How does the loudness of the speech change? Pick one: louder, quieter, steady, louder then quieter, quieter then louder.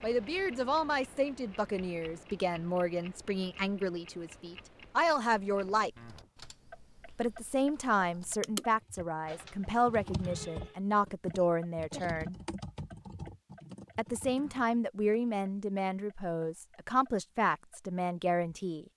steady.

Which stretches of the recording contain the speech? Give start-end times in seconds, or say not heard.
0.0-5.9, 7.2-12.3, 13.9-18.9.